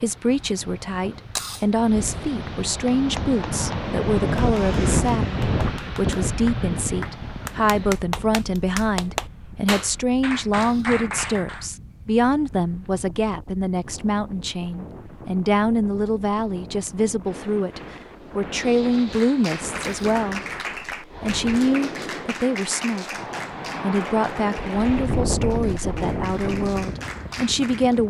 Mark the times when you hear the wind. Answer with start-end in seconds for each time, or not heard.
0.0-28.0.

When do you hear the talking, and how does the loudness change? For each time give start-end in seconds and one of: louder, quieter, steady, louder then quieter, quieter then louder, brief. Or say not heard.
0.0-23.2 steady
23.8-28.0 steady.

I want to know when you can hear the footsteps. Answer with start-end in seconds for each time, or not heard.
not heard.